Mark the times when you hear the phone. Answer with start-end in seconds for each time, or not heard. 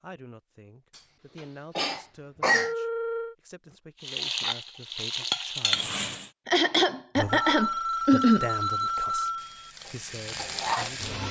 2.5-3.4, 7.2-9.7.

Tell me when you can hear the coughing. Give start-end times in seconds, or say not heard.
1.8-2.7, 6.5-8.4.